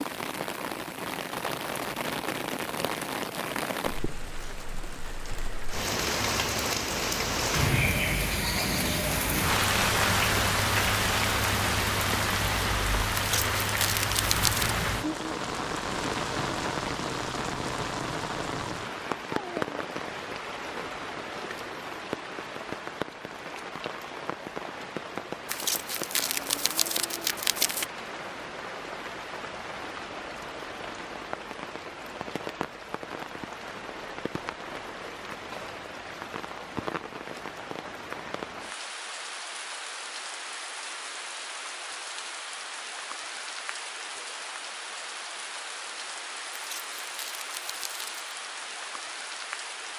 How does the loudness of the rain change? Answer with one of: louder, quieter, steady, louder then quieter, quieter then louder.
quieter.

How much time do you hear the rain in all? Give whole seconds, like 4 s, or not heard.
50 s.